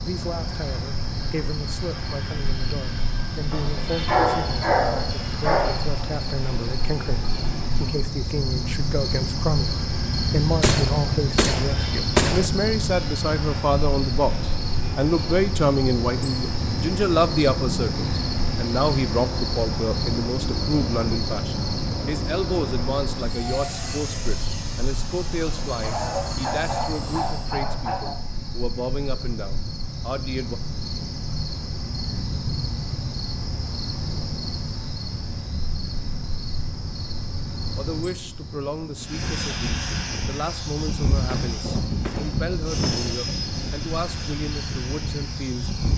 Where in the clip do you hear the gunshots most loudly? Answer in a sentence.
The volume of the gunshots peaks at 12 seconds.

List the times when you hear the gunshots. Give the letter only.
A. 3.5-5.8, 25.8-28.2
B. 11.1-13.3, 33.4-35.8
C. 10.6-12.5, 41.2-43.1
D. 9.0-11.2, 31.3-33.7
C.